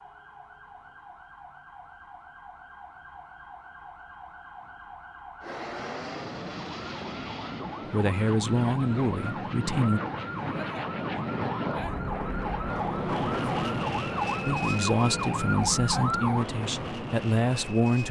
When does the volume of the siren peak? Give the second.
16 s.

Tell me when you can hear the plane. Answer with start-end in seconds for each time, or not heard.
5.4-18.0.